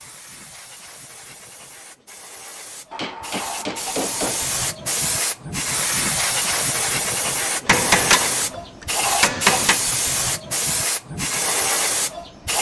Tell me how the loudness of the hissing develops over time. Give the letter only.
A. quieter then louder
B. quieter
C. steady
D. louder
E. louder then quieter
D.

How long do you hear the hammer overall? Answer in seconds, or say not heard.
4 s.